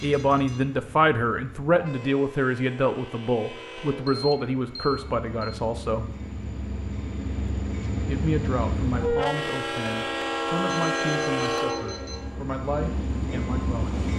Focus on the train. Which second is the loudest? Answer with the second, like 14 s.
11 s.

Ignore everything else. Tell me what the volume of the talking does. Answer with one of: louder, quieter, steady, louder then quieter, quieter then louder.
quieter.